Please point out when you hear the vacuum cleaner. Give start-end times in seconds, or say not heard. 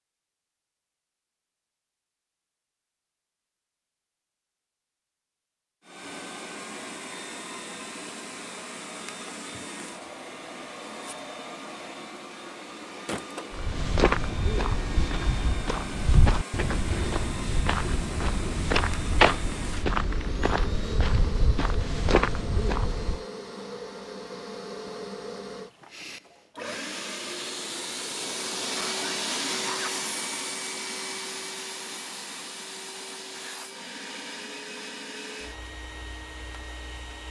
5.8-37.2.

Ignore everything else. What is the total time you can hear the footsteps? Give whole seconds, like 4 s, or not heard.
10 s.